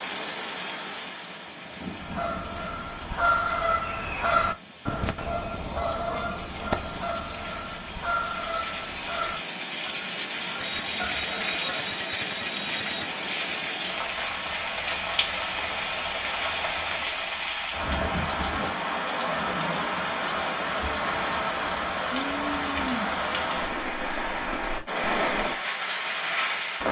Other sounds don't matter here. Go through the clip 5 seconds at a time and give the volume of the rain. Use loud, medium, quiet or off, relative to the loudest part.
medium, medium, loud, loud, loud, loud.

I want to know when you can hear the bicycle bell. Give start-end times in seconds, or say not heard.
6.5-7.2, 10.6-13.1, 18.4-19.1.